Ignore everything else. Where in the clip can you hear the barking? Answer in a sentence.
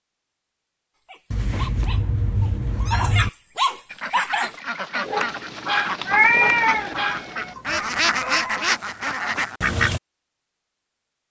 The barking can be heard from 0.9 to 8.7 s.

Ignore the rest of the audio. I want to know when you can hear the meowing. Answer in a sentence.
You can hear the meowing from 1.3 to 3.3 s and from 6.0 to 7.6 s.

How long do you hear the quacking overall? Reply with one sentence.
You can hear the quacking for 6 seconds altogether.